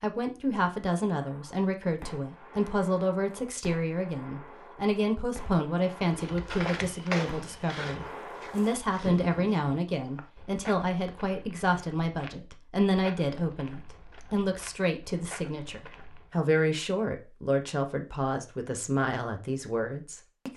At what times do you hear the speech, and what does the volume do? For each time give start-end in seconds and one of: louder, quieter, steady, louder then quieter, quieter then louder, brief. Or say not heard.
0.0-20.5 steady.